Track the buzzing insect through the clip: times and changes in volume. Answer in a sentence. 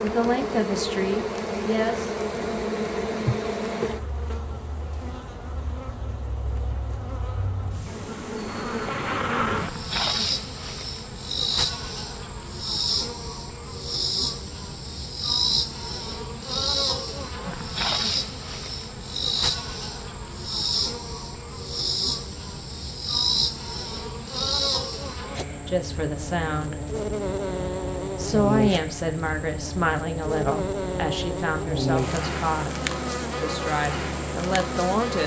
The buzzing insect can be heard from 0.0 to 35.2 s, at a steady volume.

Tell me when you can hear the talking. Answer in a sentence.
You can hear the talking from 0.0 to 2.1 s, from 25.6 to 26.8 s and from 28.1 to 35.2 s.